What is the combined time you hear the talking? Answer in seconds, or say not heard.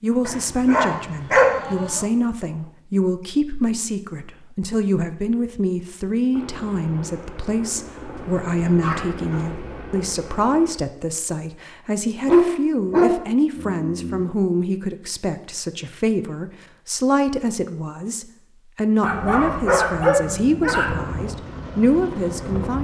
23 s.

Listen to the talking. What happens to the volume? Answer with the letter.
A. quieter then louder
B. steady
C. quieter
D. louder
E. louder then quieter
B.